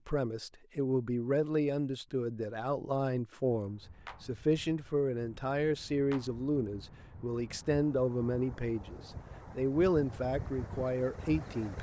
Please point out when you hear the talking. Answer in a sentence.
You can hear the talking from 0.1 to 11.7 s.